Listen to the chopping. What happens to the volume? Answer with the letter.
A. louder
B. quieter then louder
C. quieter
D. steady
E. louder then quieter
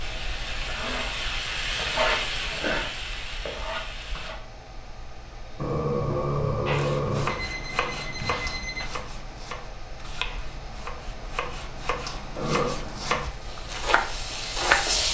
B.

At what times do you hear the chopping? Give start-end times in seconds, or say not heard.
6.7-14.9.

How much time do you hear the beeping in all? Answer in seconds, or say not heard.
2 s.